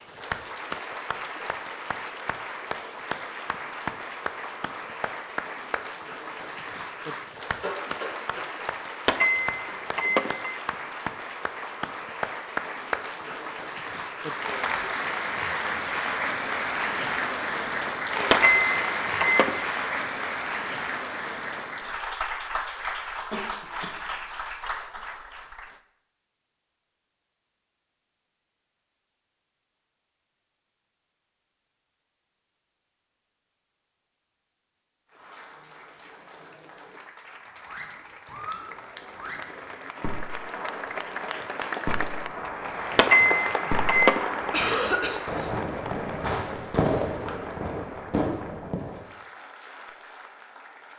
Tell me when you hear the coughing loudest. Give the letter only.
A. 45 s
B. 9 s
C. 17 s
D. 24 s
A.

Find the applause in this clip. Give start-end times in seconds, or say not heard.
0.0-25.8, 35.1-50.9.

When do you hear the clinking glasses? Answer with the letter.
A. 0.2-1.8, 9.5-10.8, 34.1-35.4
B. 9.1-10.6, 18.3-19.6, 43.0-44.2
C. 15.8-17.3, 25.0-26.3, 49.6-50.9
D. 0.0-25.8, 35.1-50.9
B.